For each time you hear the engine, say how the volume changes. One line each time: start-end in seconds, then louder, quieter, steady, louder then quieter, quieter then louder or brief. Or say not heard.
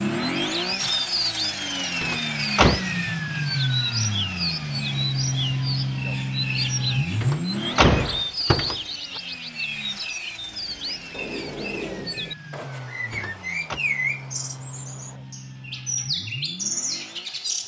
0.0-17.6 quieter.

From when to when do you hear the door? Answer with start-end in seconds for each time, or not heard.
2.0-2.8, 7.2-9.2, 13.1-13.8.